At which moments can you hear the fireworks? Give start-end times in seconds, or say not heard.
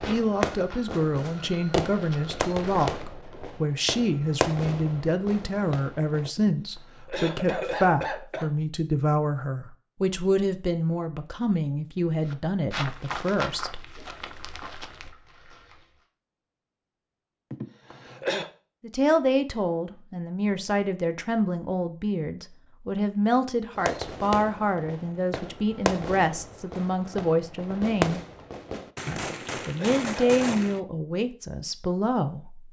0.0-6.3, 23.8-30.8.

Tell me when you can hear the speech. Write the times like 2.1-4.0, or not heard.
0.1-13.9, 18.8-28.2, 29.1-32.6.